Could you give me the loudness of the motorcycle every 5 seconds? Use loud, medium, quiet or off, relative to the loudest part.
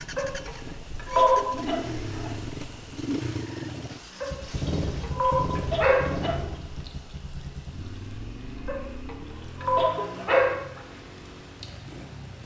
loud, loud, medium.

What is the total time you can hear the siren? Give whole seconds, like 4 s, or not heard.
not heard.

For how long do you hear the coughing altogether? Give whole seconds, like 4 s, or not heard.
5 s.